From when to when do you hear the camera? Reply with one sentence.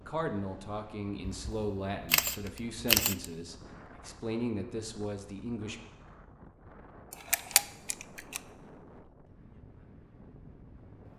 You can hear the camera from 1.2 to 3.2 s and from 7.1 to 8.4 s.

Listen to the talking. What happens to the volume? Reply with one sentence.
The loudness of the talking stays about the same.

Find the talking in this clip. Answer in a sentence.
You can hear the talking from 0.1 to 5.8 s.